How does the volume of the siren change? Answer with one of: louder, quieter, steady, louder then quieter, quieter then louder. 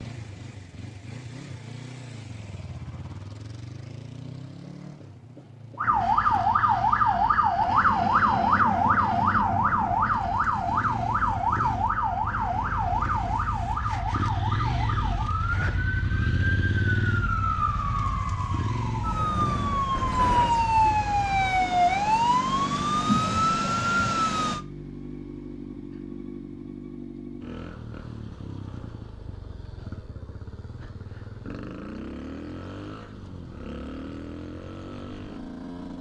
quieter then louder.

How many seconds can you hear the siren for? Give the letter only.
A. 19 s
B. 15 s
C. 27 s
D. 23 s
A.